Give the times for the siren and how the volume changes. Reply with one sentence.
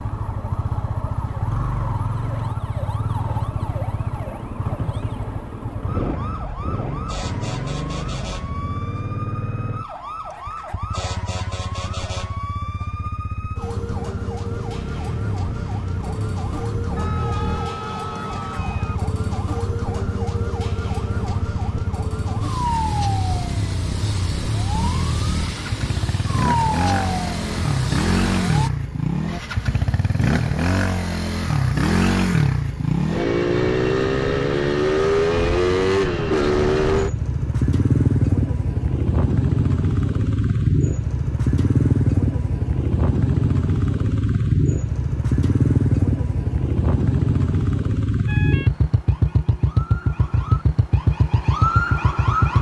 The siren can be heard from 0.0 to 28.7 s, getting louder; and from 48.2 to 52.5 s, getting louder.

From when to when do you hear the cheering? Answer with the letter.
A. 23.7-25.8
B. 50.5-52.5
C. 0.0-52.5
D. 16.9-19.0
D.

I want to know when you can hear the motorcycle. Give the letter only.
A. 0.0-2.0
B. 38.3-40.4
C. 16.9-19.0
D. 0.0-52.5
D.